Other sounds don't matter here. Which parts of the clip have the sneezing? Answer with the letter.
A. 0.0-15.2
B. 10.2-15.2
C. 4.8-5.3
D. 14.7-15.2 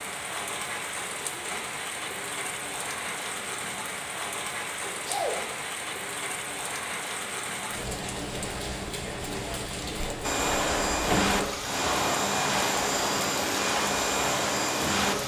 C.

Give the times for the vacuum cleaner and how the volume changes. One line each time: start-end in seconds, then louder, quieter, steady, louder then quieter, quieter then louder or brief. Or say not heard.
10.2-15.2 steady.